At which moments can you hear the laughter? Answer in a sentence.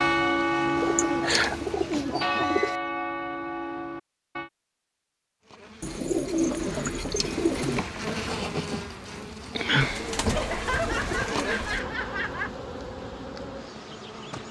You can hear the laughter from 0.9 to 1.6 s, from 6.3 to 6.9 s and from 10.2 to 12.6 s.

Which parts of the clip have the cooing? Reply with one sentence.
You can hear the cooing from 0.8 to 2.8 s, from 5.8 to 7.8 s and from 9.8 to 11.8 s.